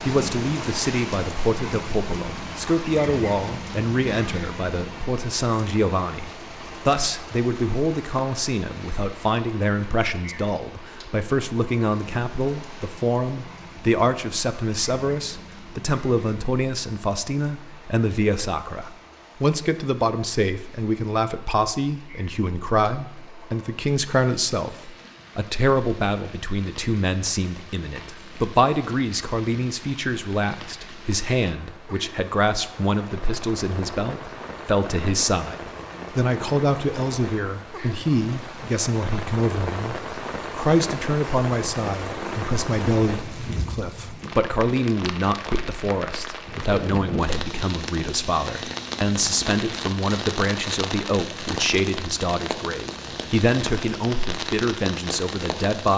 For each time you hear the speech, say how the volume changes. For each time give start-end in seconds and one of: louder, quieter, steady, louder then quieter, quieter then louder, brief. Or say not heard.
0.0-55.9 steady.